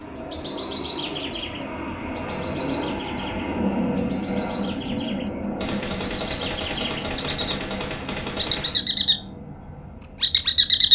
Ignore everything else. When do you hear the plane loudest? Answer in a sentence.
The loudest moment of the plane is at 4 seconds.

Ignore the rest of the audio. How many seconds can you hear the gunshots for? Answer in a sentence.
The gunshots can be heard for 3 seconds in total.